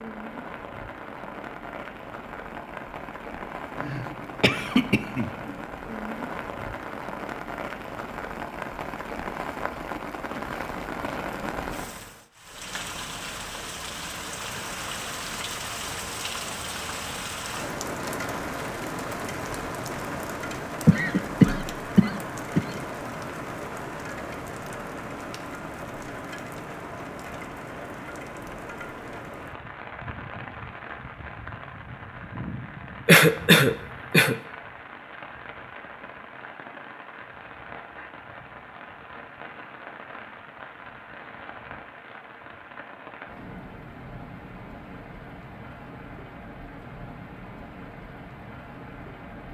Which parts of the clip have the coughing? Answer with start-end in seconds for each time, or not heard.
3.8-5.5, 20.9-22.6, 33.0-34.4.